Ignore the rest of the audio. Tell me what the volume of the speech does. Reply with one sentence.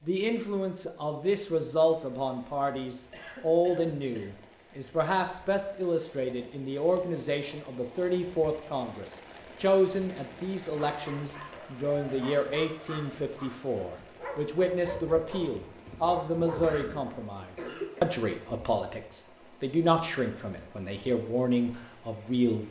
The loudness of the speech stays about the same.